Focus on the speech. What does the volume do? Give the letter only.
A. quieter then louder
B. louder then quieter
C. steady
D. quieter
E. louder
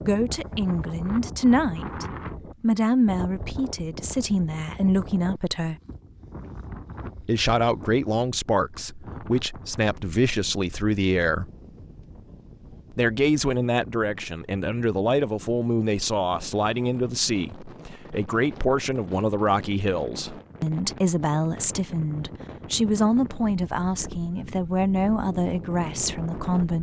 C.